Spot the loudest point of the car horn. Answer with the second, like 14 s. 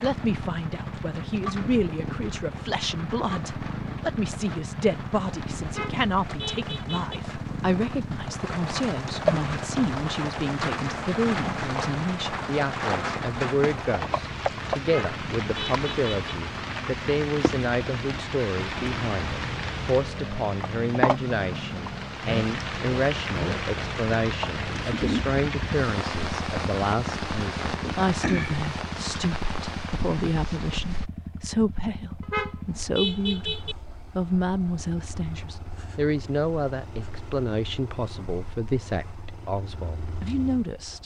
33 s.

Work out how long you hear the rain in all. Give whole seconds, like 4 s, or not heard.
31 s.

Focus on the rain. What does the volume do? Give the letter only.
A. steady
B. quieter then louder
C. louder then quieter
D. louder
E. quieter
D.